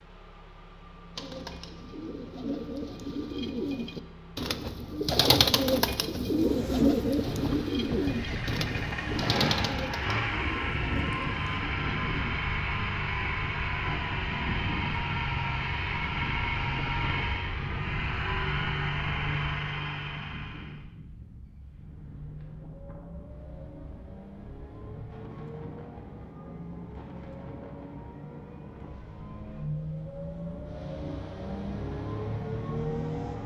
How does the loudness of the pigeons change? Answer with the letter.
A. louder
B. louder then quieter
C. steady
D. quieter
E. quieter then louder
B.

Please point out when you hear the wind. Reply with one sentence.
The wind can be heard from 6.2 to 33.4 s.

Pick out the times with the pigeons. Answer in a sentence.
The pigeons can be heard from 1.1 to 12.4 s.